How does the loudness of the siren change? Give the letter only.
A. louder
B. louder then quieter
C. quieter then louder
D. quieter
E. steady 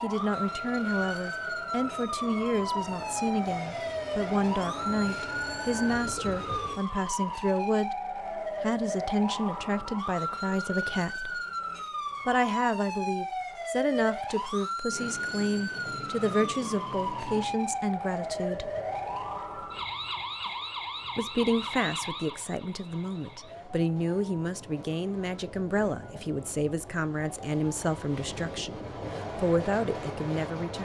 D.